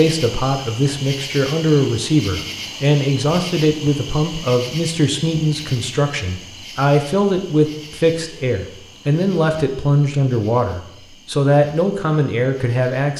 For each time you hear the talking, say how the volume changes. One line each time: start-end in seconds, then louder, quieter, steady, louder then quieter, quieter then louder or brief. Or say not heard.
0.0-13.1 steady.